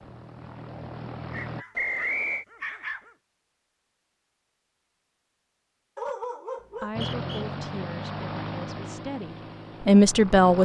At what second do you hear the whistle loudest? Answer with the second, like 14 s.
2 s.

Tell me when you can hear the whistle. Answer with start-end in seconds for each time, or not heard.
1.8-2.5, 6.6-7.5.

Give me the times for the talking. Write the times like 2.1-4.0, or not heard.
6.8-10.6.